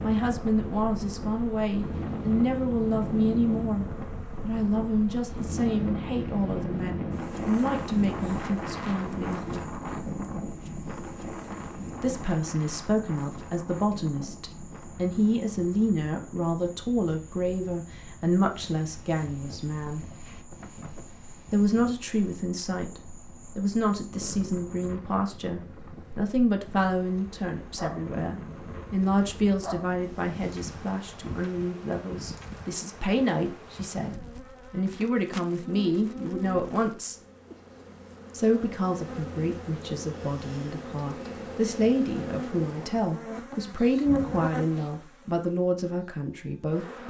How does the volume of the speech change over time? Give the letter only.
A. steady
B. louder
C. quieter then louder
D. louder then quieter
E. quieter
A.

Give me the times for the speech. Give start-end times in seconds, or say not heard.
0.0-9.6, 12.0-20.1, 21.5-37.1, 38.3-47.0.